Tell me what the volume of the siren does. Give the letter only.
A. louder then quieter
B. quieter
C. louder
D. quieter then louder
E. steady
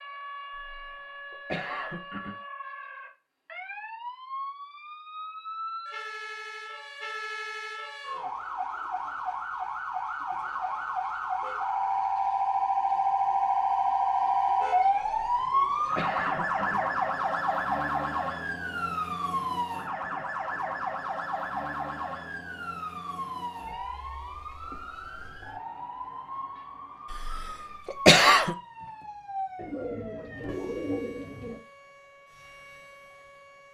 A.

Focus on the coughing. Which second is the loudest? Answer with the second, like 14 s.
28 s.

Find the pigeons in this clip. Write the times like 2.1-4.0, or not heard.
29.6-31.6.